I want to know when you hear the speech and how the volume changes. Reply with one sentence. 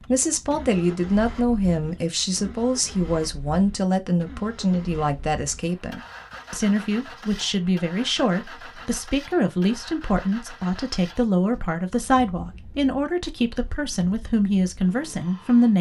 You can hear the speech from 0.1 to 15.7 s, at a steady volume.